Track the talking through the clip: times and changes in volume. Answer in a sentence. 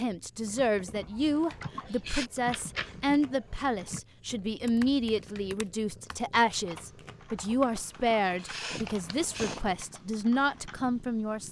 The talking can be heard from 0.0 to 11.4 s, at a steady volume.